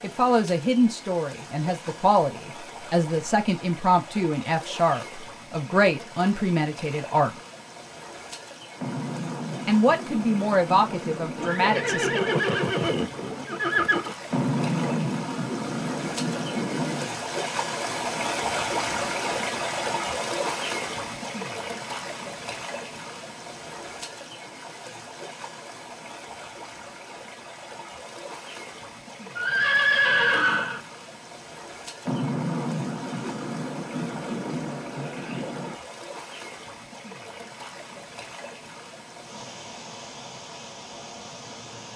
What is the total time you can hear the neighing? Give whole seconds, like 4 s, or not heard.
4 s.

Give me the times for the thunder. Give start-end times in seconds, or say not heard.
8.8-12.4, 14.3-17.2, 32.0-35.8.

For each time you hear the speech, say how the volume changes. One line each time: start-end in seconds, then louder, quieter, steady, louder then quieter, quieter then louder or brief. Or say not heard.
0.0-7.3 steady
9.7-12.2 brief.